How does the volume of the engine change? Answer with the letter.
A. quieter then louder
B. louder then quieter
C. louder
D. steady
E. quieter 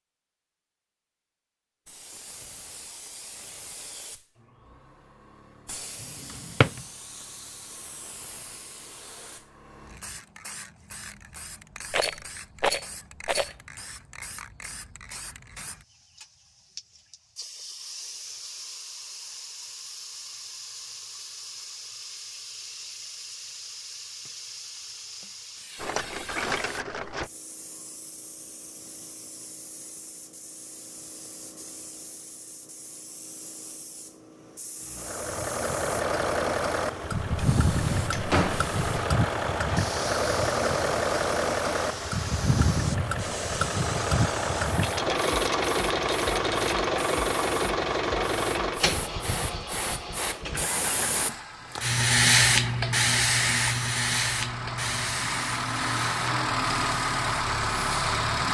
A.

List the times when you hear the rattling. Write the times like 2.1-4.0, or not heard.
11.9-13.6, 25.8-27.3, 44.8-46.9.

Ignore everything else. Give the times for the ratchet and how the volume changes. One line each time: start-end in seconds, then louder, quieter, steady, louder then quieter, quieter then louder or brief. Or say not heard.
not heard.